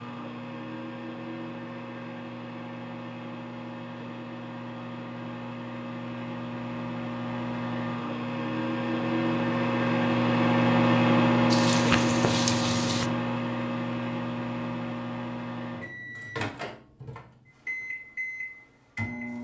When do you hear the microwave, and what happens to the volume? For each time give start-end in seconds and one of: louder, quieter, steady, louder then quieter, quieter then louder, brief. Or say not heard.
0.0-19.3 louder then quieter.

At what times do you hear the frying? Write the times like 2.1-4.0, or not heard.
11.5-13.1.